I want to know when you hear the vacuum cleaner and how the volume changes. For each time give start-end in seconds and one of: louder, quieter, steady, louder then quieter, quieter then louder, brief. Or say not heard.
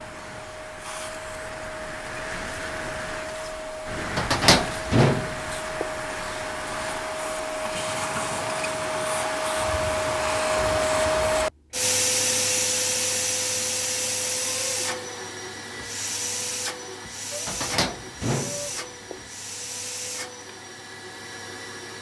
0.0-21.9 louder then quieter.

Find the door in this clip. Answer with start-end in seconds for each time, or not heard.
4.2-5.8, 17.4-19.1.